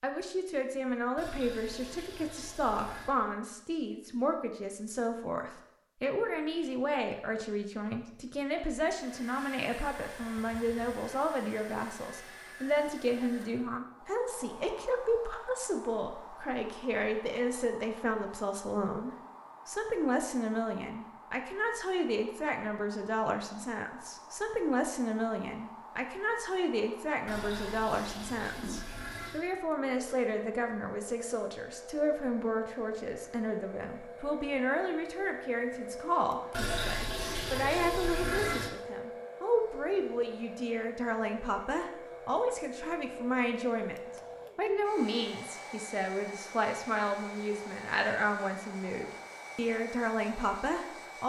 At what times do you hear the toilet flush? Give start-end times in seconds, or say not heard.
1.1-3.1, 27.2-29.4, 36.5-38.7.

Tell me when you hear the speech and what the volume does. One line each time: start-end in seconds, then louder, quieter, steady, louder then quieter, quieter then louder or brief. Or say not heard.
0.0-51.2 steady.